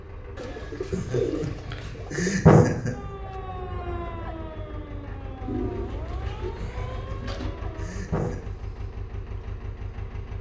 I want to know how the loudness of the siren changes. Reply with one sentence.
The volume of the siren goes down.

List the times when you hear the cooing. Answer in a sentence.
The cooing can be heard from 0.3 to 2.4 s and from 5.5 to 7.5 s.